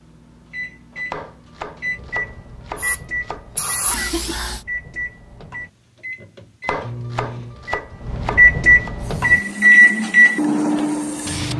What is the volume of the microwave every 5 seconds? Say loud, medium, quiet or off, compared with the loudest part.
quiet, loud, loud.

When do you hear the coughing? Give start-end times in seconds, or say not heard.
3.9-4.5.